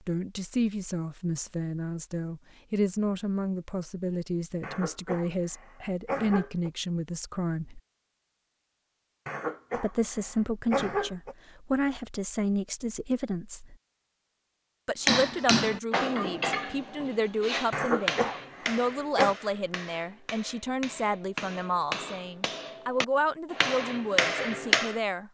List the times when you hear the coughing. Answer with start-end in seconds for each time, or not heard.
4.6-6.7, 9.2-11.3, 17.7-19.4.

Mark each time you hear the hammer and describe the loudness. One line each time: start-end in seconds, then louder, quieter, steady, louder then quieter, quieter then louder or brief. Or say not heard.
15.1-24.9 quieter then louder.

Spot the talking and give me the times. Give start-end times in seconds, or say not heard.
0.1-7.8, 9.8-13.8, 14.8-25.2.